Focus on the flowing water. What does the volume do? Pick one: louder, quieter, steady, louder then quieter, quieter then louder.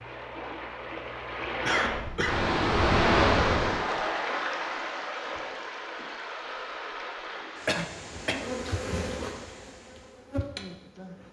louder then quieter.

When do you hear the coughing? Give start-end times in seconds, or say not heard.
1.6-2.4, 7.7-8.4.